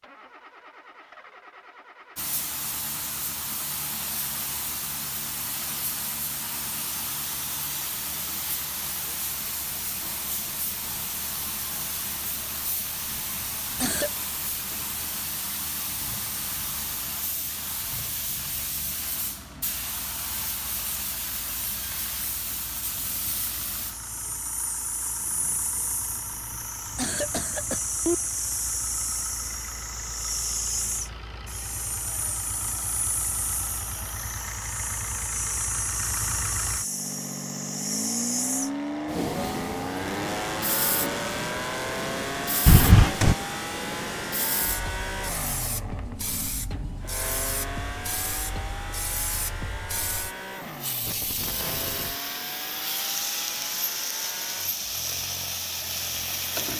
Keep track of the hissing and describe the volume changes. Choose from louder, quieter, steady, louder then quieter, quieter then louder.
steady.